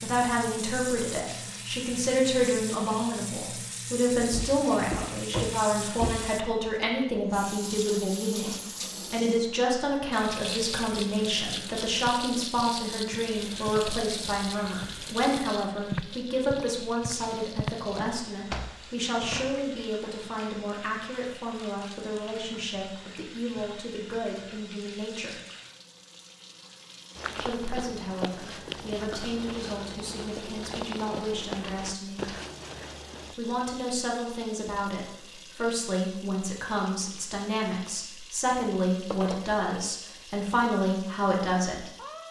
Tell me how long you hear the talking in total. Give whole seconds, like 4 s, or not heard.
39 s.